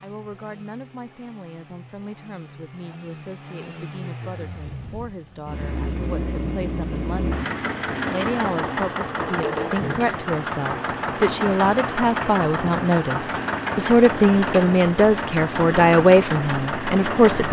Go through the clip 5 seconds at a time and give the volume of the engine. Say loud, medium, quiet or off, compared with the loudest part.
quiet, loud, loud, loud.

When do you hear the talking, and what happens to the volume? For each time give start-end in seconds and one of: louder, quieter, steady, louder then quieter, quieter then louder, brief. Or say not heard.
0.0-17.4 louder.